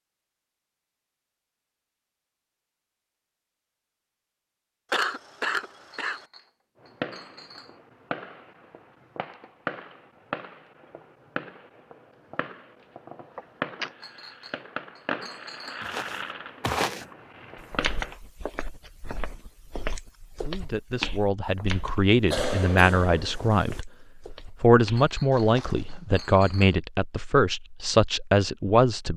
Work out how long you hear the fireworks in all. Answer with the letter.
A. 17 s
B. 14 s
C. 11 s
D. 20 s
C.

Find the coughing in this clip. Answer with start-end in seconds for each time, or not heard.
4.9-6.2, 13.3-13.9, 22.2-23.8.